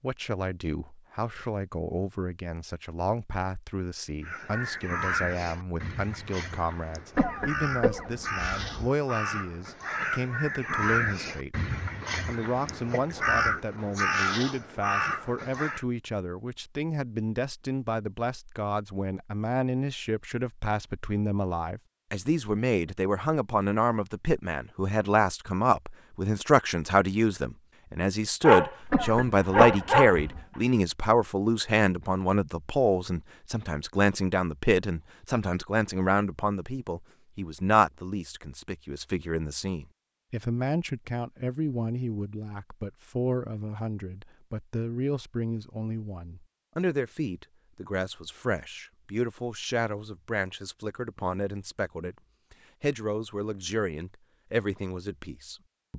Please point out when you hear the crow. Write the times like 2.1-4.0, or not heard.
4.2-15.8.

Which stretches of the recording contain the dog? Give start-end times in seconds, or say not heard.
28.4-30.2.